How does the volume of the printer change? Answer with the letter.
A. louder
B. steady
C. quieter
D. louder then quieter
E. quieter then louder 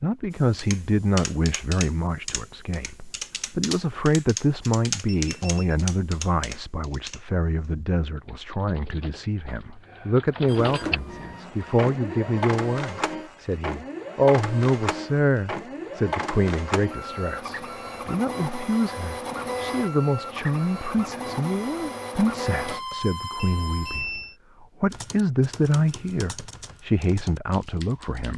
B.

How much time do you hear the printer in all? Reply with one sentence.
You can hear the printer for 14 seconds altogether.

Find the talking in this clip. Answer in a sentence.
The talking can be heard from 0.0 to 28.3 s.